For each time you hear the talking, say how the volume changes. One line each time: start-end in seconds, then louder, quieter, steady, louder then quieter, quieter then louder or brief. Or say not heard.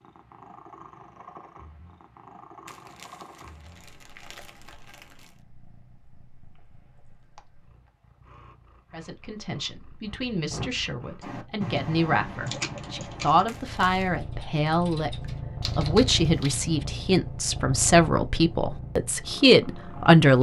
8.9-20.3 louder.